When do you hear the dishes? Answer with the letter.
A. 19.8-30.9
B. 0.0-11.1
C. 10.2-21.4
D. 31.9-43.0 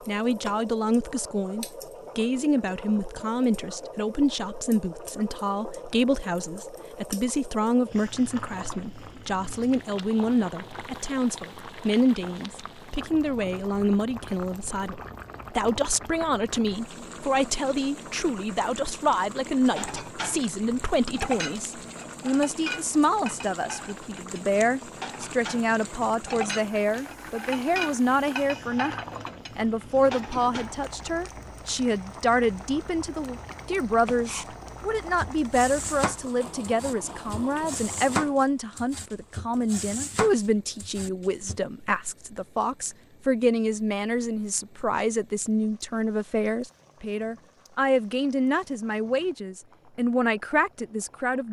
A.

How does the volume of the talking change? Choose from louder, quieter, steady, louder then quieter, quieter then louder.
steady.